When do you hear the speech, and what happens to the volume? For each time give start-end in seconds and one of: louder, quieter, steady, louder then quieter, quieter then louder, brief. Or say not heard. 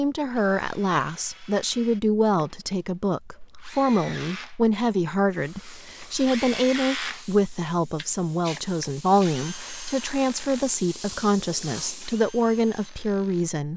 0.0-13.7 steady.